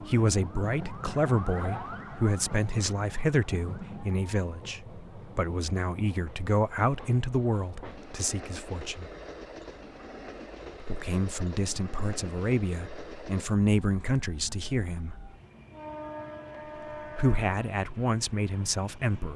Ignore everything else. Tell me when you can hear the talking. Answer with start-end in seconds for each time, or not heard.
0.0-9.1, 10.8-15.2, 17.1-19.3.